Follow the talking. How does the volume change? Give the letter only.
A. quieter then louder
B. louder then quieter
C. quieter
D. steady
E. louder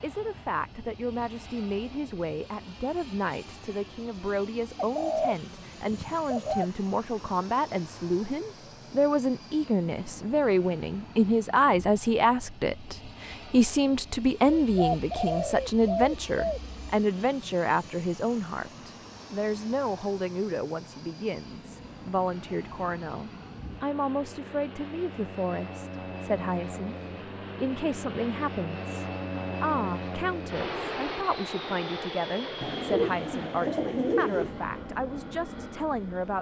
B.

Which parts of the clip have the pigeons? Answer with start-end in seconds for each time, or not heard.
4.8-6.7, 14.7-16.8, 32.6-34.5.